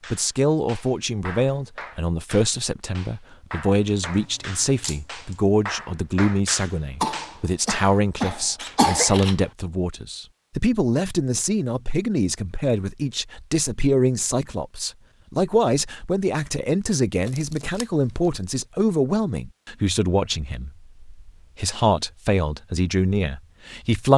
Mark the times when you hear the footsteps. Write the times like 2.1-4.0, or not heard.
not heard.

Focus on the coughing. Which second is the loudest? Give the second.
9 s.